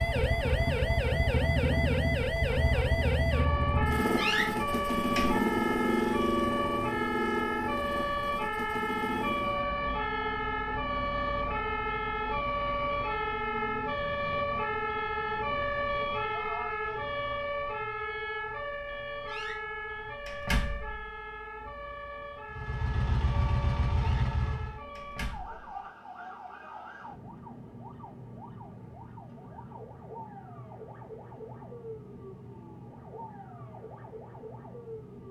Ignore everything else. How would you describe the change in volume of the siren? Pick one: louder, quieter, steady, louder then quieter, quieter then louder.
quieter.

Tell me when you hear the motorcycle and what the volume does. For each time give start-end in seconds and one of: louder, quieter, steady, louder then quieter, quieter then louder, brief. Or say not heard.
0.0-9.7 quieter
22.6-24.8 brief.